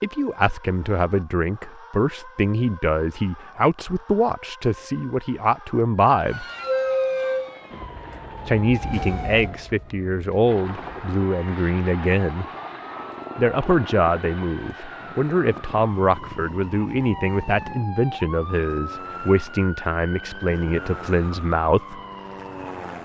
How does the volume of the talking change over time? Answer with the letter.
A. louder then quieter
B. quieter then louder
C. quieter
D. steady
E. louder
D.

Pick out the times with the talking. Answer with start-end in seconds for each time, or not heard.
0.0-6.5, 8.4-12.4, 13.3-22.0.